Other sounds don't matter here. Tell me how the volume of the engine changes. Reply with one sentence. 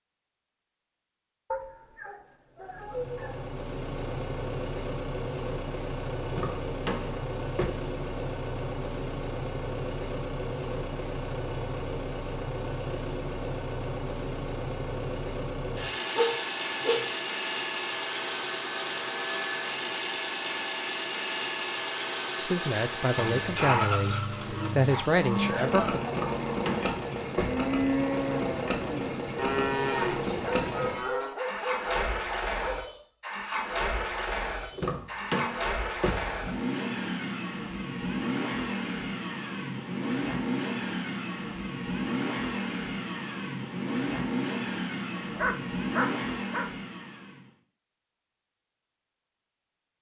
The loudness of the engine stays about the same.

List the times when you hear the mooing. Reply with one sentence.
The mooing can be heard from 24.4 to 31.4 s.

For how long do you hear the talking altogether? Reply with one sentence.
The talking can be heard for 4 seconds in total.